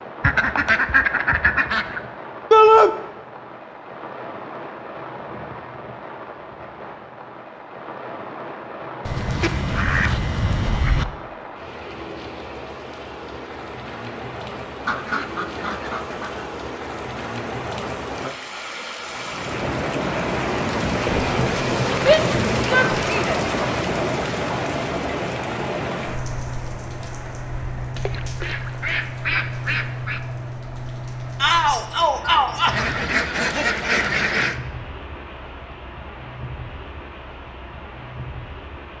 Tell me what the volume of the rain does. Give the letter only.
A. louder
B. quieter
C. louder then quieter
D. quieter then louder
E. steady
C.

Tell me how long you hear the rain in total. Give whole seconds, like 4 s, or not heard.
39 s.